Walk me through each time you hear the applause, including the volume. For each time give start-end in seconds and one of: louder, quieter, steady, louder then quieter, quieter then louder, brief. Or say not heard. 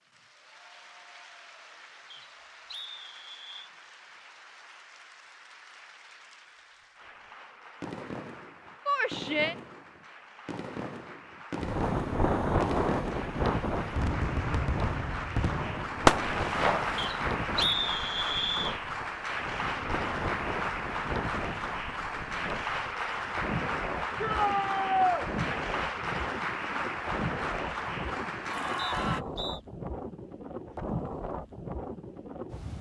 0.0-29.2 louder.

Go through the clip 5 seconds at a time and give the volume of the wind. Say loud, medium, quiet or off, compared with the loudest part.
off, off, loud, medium, medium, medium, medium.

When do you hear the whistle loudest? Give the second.
18 s.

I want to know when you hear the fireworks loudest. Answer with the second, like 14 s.
16 s.